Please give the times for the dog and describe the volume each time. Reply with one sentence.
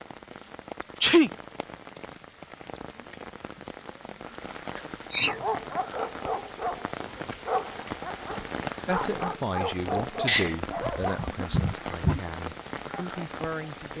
The dog can be heard from 5.2 to 11.3 s, getting quieter then louder.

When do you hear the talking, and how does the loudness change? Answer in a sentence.
The talking can be heard from 8.8 to 13.9 s, getting quieter then louder.